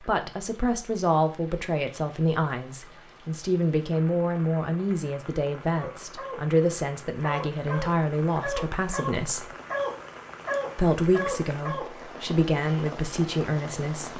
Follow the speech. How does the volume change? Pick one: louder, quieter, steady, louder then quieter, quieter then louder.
steady.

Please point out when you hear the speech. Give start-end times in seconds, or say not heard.
0.0-9.5, 10.8-14.1.